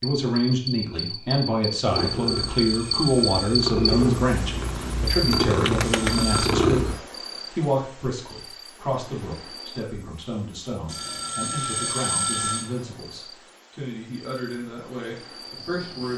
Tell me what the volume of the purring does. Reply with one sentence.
The loudness of the purring goes up.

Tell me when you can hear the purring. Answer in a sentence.
You can hear the purring from 1.9 to 7.0 s.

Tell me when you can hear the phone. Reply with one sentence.
The phone can be heard from 1.9 to 3.6 s, from 5.8 to 6.5 s and from 10.8 to 12.7 s.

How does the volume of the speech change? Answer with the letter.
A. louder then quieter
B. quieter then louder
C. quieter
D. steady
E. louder
C.